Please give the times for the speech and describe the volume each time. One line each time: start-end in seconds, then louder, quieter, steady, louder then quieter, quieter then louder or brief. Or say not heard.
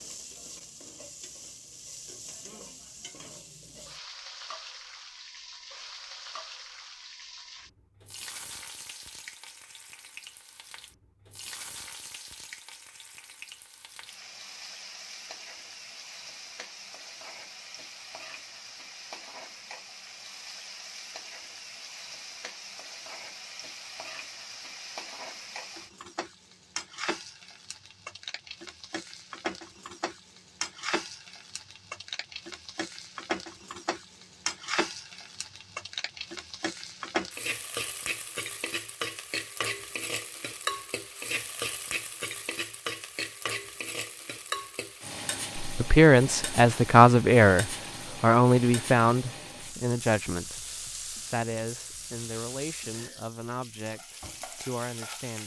45.6-55.4 quieter.